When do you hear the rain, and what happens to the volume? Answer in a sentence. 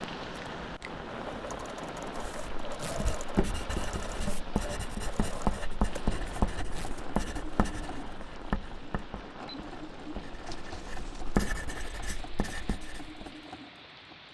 You can hear the rain from 0.0 to 14.2 s, getting quieter.